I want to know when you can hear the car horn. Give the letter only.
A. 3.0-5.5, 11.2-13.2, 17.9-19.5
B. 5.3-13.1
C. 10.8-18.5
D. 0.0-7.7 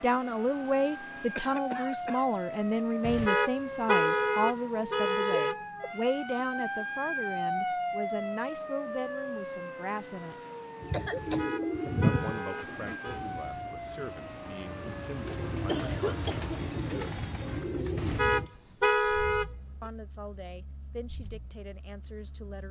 A.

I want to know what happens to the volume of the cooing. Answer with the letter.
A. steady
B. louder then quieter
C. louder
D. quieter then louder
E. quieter
D.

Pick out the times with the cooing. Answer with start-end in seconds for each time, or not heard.
10.8-18.5.